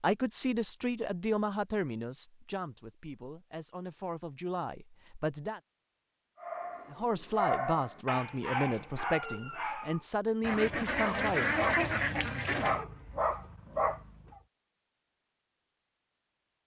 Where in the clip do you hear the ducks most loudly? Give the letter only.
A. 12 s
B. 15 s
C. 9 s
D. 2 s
A.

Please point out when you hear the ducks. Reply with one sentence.
You can hear the ducks from 10.4 to 12.8 s.